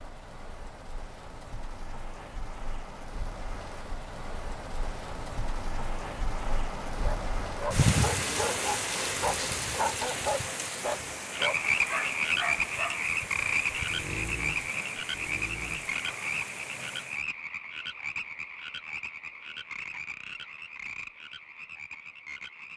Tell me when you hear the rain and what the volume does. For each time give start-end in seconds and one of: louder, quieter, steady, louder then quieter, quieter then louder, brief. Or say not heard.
0.0-17.2 louder then quieter.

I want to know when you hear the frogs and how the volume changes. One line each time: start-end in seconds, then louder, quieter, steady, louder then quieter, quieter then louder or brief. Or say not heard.
11.3-22.7 quieter.